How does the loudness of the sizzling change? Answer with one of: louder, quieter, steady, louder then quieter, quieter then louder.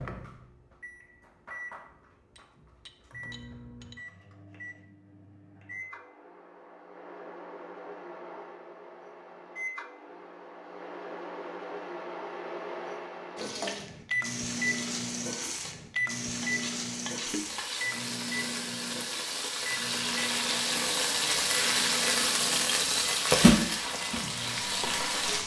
louder.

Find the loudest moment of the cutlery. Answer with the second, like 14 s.
17 s.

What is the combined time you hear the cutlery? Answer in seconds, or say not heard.
3 s.